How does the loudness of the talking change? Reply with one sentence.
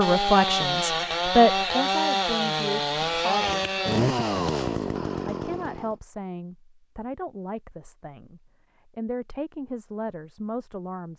The loudness of the talking goes down.